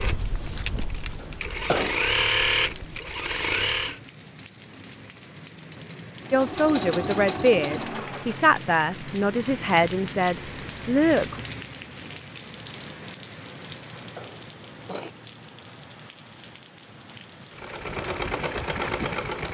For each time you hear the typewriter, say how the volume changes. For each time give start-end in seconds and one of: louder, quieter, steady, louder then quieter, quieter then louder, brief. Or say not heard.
not heard.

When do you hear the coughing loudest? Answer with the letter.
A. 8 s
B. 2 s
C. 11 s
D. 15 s
B.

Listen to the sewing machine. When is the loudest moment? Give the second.
2 s.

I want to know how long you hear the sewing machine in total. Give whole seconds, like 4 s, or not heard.
8 s.